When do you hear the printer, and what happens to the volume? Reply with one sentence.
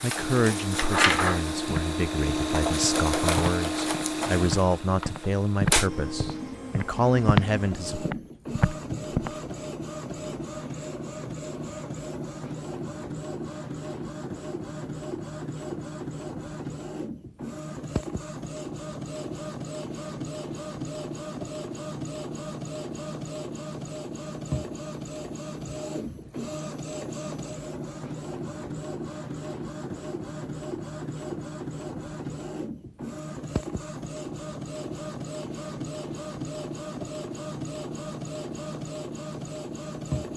You can hear the printer from 0.0 to 40.3 s, getting quieter.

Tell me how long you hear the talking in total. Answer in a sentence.
The talking can be heard for 8 seconds in total.